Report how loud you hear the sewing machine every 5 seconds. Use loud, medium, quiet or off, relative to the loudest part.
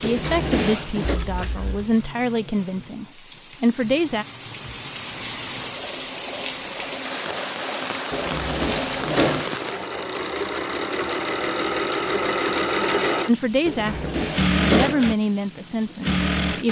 quiet, medium, loud, loud.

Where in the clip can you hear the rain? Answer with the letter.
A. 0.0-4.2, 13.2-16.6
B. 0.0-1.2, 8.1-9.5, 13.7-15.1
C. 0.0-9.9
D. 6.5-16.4
C.